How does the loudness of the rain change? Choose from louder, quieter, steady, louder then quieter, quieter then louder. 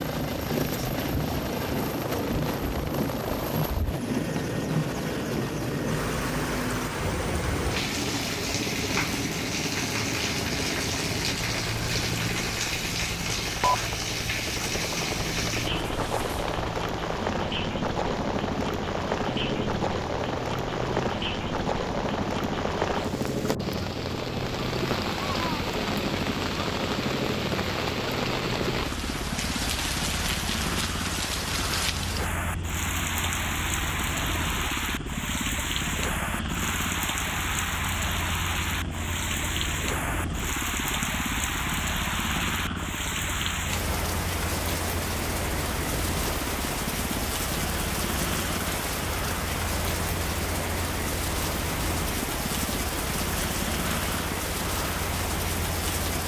steady.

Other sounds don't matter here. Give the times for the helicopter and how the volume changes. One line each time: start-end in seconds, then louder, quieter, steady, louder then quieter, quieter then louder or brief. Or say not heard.
0.0-56.2 steady.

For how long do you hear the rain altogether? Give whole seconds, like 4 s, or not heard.
56 s.